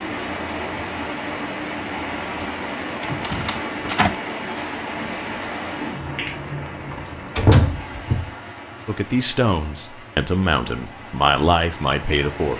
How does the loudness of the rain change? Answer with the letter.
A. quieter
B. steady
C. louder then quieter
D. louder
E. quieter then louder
A.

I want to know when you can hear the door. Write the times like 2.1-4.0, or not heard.
3.0-4.2, 6.9-8.3.